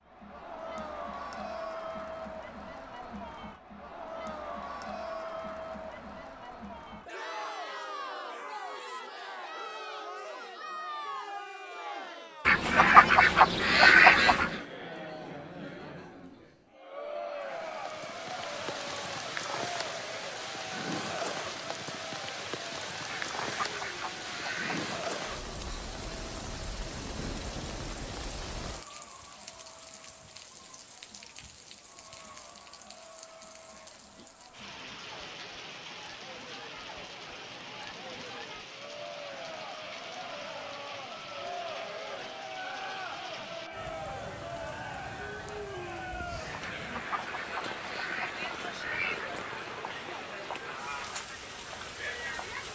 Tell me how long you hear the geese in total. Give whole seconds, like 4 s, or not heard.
7 s.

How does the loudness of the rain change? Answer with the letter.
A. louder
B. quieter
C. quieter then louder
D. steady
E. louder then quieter
B.